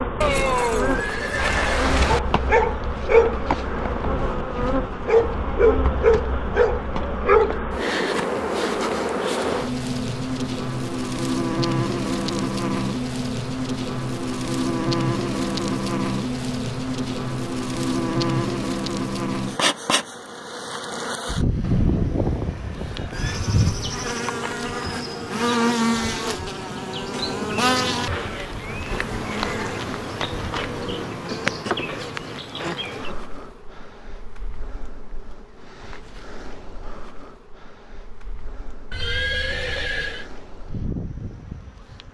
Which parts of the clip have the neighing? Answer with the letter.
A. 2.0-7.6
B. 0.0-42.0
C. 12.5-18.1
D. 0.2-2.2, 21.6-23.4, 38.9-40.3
D.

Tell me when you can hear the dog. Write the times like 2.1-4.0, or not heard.
2.0-7.6.